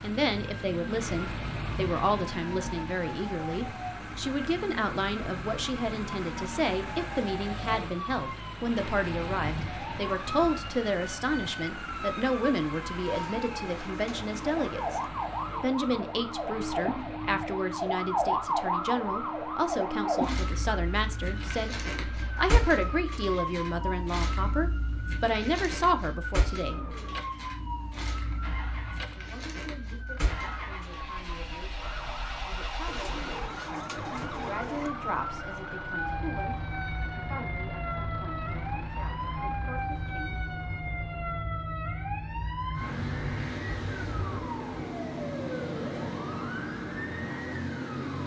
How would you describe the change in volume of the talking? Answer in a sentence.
The loudness of the talking goes down.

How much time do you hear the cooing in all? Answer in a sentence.
You can hear the cooing for 4 seconds altogether.